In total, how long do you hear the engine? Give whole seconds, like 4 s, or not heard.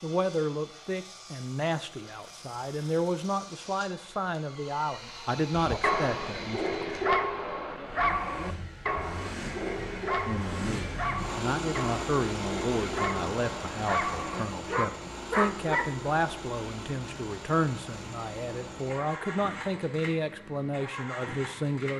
22 s.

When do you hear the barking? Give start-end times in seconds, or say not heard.
5.5-15.9.